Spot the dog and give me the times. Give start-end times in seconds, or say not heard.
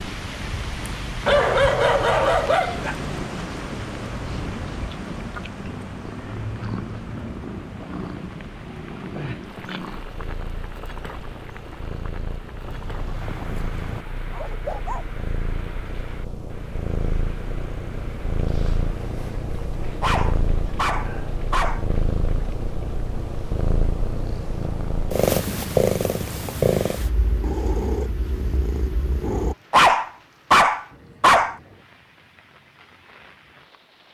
1.2-3.0, 12.6-15.1, 20.0-21.9, 29.7-31.6.